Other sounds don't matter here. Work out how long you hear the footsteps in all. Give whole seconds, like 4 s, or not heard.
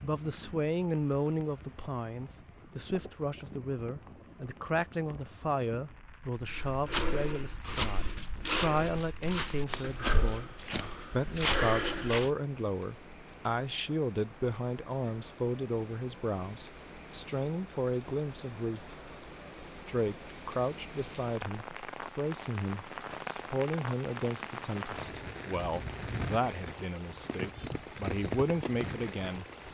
6 s.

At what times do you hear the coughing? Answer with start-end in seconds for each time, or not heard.
not heard.